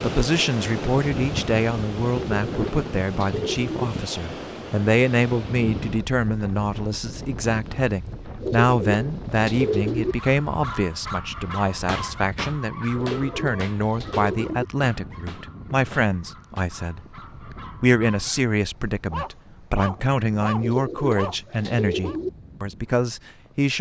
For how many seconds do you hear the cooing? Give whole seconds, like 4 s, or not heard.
7 s.